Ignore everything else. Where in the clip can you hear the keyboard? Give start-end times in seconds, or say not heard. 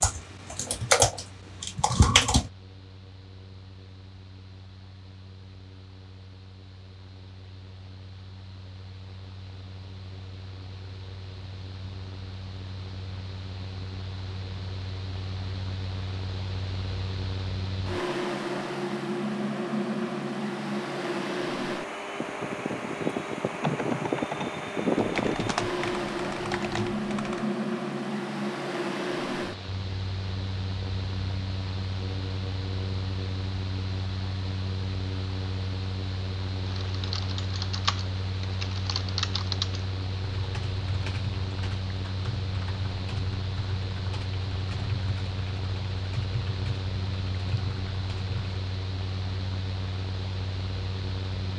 0.0-2.5, 23.6-27.4, 36.6-48.6.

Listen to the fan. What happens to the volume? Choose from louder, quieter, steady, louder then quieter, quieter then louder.
louder then quieter.